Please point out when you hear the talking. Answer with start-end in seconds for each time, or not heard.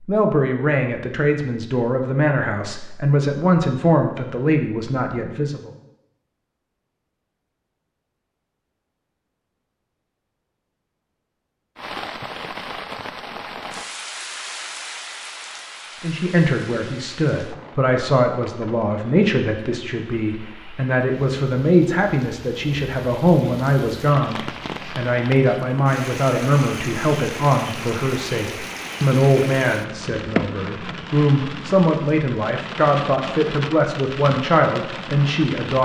0.1-5.7, 16.0-35.8.